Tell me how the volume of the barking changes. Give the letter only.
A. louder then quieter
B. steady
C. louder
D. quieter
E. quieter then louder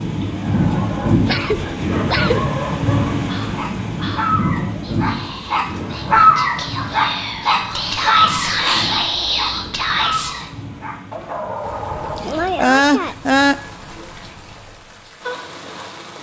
A.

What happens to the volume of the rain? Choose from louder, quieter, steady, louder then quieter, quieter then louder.
quieter.